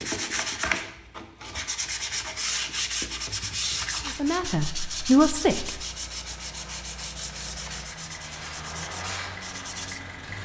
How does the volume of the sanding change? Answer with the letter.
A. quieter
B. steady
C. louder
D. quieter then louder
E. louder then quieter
A.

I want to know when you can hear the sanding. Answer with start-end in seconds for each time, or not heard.
0.0-10.4.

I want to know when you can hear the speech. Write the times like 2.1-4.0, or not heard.
4.0-5.8.